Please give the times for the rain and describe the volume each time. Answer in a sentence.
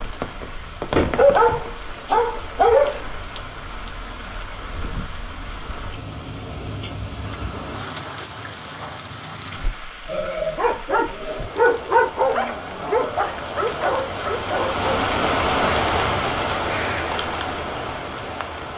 You can hear the rain from 0.0 to 18.7 s, getting louder.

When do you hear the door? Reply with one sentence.
The door can be heard from 0.9 to 1.6 s.